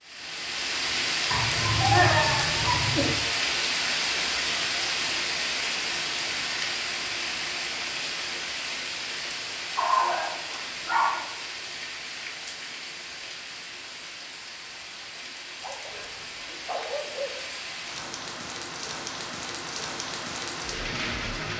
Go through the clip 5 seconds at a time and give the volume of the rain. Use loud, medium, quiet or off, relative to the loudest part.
loud, loud, medium, medium, medium.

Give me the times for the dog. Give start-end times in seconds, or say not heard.
1.3-3.1, 9.8-11.2, 15.6-17.3.